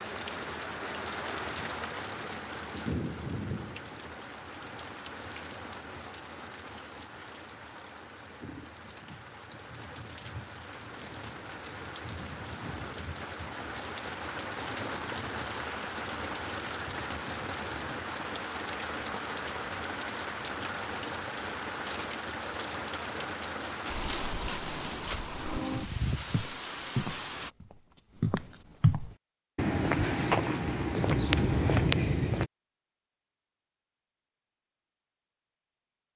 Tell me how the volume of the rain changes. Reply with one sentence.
The loudness of the rain goes down, then up.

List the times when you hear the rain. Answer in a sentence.
The rain can be heard from 0.0 to 27.5 s.